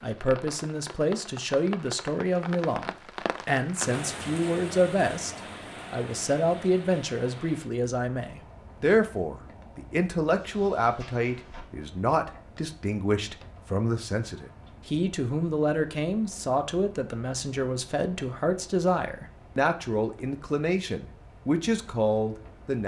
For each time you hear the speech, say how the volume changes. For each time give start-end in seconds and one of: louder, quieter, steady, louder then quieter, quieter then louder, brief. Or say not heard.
0.0-22.8 steady.